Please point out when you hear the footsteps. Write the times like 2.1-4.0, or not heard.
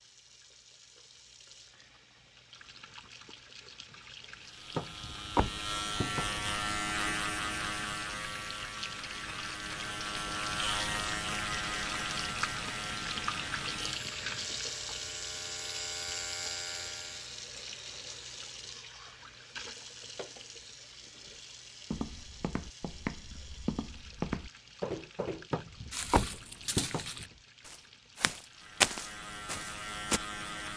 21.9-30.2.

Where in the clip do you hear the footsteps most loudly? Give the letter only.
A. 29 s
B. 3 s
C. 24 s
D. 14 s
A.